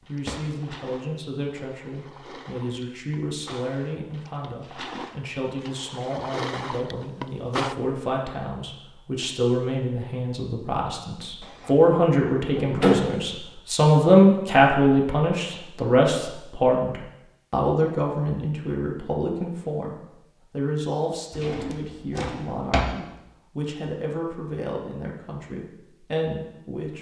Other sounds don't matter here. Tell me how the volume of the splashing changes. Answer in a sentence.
The loudness of the splashing goes up.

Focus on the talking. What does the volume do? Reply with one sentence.
The volume of the talking goes up, then down.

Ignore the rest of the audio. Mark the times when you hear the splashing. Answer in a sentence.
You can hear the splashing from 0.0 to 7.8 s.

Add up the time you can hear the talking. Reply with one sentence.
You can hear the talking for 27 seconds altogether.